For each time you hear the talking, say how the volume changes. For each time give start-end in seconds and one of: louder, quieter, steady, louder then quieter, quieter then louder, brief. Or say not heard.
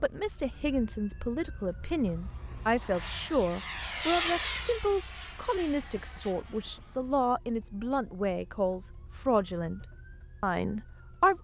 0.0-9.8 steady
10.4-11.3 brief.